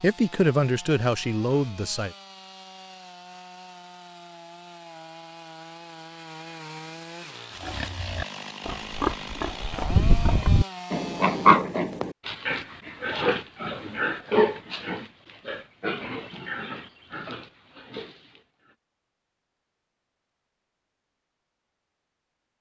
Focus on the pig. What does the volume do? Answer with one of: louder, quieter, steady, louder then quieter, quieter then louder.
louder then quieter.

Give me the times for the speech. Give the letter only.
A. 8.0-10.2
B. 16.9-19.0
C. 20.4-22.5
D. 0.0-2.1
D.